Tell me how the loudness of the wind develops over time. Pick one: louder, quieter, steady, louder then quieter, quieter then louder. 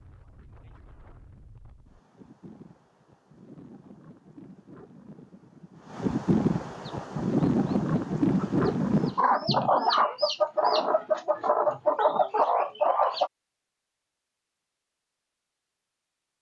louder.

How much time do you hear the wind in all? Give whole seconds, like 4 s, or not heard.
9 s.